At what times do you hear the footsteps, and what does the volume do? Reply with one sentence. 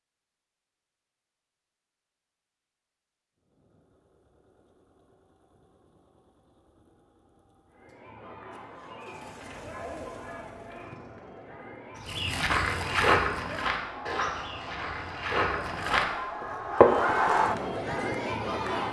You can hear the footsteps from 12.0 to 17.1 s, getting quieter then louder.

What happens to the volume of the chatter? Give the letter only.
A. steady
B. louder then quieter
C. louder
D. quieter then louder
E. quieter
C.